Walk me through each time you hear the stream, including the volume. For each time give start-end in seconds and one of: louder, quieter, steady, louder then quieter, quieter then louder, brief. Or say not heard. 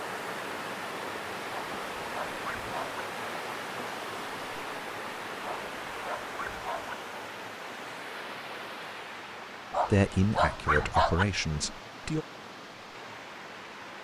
0.0-14.0 quieter.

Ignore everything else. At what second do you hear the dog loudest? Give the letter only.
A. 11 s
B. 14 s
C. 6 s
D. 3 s
A.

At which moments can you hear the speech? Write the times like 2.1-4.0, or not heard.
9.9-12.2.